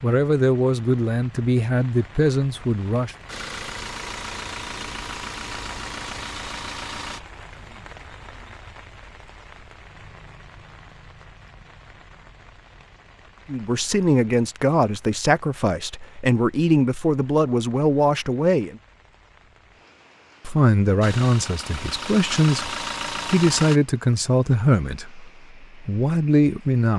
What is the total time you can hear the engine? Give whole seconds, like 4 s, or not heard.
7 s.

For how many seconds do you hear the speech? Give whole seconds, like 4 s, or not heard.
15 s.